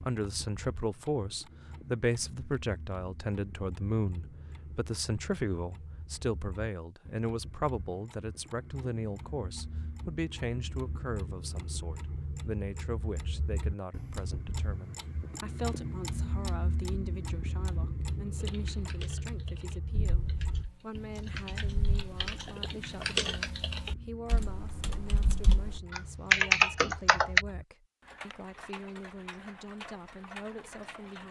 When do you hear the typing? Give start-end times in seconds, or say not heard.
18.4-27.4.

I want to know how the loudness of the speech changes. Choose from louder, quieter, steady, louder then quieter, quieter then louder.
quieter.